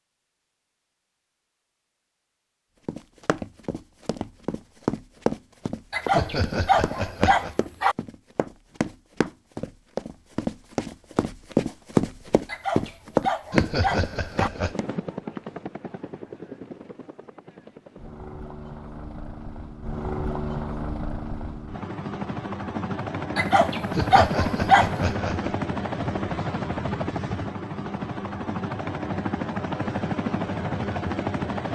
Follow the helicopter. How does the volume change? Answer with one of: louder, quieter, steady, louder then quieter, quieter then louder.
louder.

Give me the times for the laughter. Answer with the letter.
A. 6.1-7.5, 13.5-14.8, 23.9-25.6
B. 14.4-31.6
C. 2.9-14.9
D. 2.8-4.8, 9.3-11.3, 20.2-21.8
A.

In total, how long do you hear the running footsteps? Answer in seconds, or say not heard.
12 s.